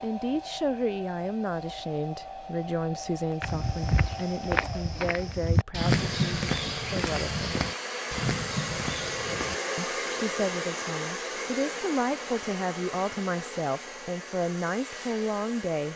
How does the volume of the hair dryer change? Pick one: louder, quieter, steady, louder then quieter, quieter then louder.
louder then quieter.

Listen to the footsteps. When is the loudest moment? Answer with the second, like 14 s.
6 s.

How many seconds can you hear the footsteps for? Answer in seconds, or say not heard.
6 s.